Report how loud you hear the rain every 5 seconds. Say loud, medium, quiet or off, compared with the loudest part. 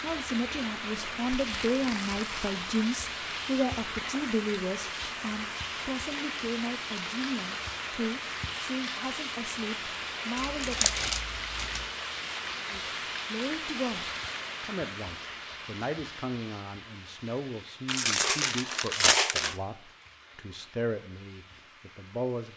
loud, loud, loud, medium, quiet.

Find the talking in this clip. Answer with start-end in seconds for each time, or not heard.
0.0-10.9, 12.7-22.5.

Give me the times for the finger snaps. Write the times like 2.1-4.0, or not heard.
not heard.